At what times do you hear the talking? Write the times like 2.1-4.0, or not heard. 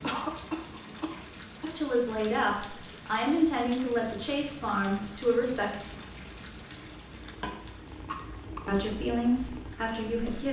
1.6-5.7, 8.7-10.4.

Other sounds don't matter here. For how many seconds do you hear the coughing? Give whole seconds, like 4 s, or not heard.
3 s.